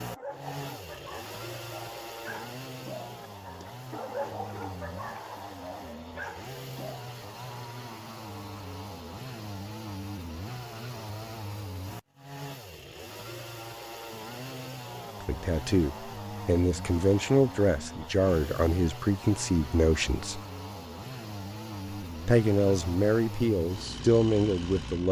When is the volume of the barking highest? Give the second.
4 s.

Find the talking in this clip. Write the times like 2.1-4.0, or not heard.
15.2-20.4, 22.2-25.0.